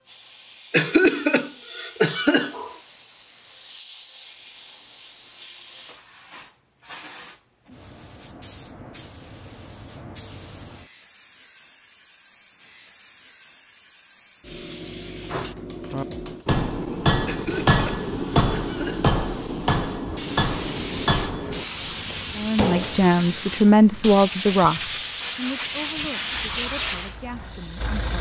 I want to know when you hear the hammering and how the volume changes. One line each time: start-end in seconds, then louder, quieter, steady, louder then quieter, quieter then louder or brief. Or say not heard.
15.3-23.0 quieter.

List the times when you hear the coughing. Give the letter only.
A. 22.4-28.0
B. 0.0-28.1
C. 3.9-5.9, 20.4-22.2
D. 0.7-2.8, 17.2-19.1
D.